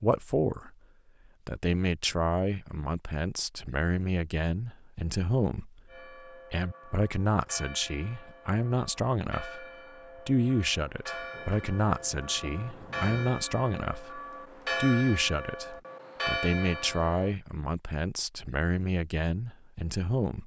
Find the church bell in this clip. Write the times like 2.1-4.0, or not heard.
5.8-17.4.